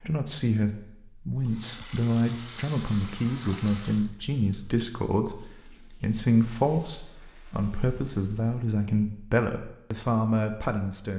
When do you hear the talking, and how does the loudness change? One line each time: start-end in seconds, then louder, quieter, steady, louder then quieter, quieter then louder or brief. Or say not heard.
0.0-11.1 steady.